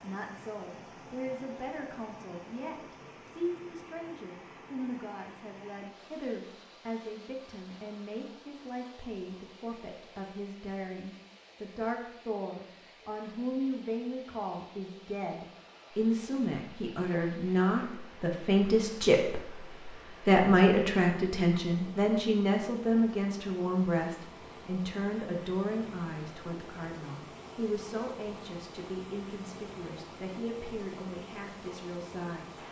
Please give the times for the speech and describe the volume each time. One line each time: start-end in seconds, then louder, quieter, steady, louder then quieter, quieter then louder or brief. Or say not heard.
0.0-32.6 louder then quieter.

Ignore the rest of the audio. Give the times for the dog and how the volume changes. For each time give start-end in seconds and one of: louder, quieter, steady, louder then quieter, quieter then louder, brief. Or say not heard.
not heard.